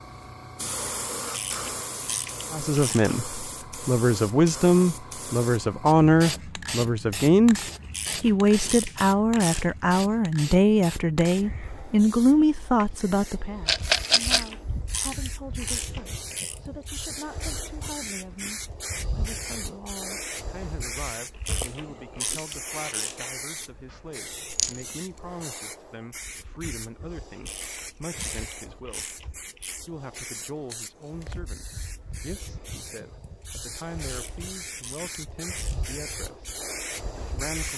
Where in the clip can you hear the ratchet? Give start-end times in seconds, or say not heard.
1.3-3.1, 7.9-9.7, 14.1-16.6, 21.4-23.3, 27.4-29.8, 34.0-35.8.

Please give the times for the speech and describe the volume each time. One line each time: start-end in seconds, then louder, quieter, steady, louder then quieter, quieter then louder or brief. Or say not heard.
2.5-7.6 louder then quieter
8.2-37.7 quieter.